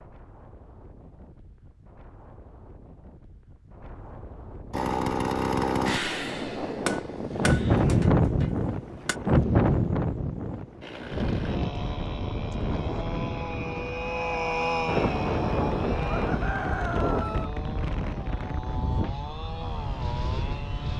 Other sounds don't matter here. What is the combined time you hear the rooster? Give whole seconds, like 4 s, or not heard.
3 s.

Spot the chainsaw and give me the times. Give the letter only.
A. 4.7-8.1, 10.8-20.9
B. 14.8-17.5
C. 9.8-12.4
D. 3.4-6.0
A.